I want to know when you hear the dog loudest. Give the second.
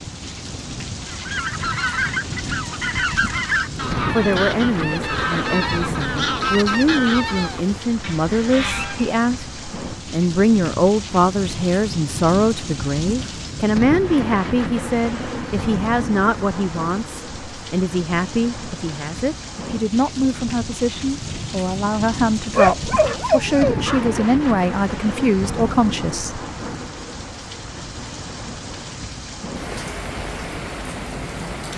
23 s.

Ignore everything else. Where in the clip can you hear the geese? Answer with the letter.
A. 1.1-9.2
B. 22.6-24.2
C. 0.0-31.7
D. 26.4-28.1
A.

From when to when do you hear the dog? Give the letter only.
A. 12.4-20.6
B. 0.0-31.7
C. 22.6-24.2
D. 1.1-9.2
C.